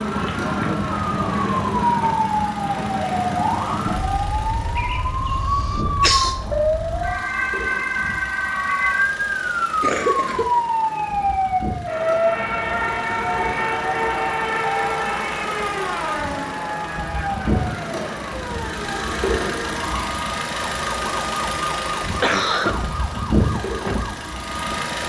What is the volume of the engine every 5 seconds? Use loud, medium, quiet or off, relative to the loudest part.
medium, medium, medium, loud, loud.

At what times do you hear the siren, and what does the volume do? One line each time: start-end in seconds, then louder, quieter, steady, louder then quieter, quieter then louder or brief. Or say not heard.
0.0-24.9 quieter.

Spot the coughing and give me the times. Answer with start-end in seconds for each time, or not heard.
4.8-6.3, 9.8-10.6, 21.8-22.8.